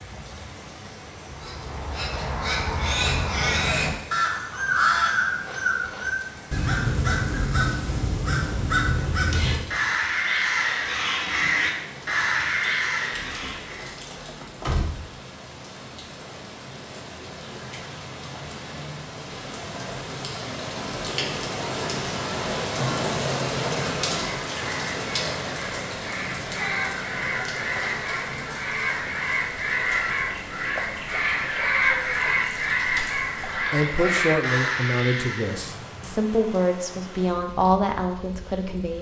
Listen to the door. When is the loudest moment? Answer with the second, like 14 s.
15 s.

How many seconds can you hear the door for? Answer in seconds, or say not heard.
2 s.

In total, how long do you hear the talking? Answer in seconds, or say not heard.
5 s.